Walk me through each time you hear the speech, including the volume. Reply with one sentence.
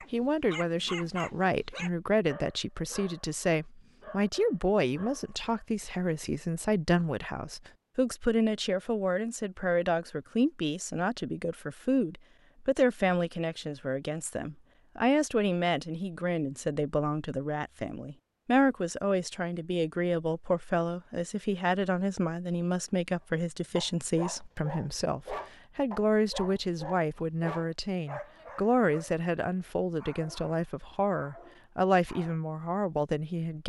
You can hear the speech from 0.1 to 33.6 s, at a steady volume.